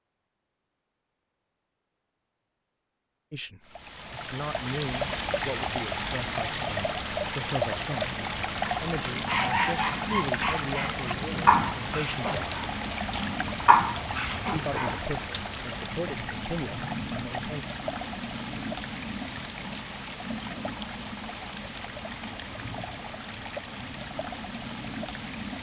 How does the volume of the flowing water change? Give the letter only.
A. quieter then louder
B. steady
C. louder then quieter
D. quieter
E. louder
D.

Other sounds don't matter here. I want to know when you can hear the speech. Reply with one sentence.
The speech can be heard from 3.3 to 12.6 s and from 14.5 to 17.6 s.